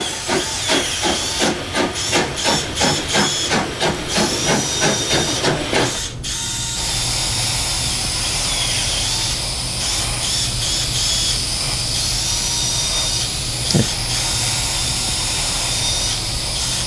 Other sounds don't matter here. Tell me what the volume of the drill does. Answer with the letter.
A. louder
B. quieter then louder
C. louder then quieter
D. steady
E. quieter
D.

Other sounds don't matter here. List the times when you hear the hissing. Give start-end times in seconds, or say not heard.
0.0-16.8.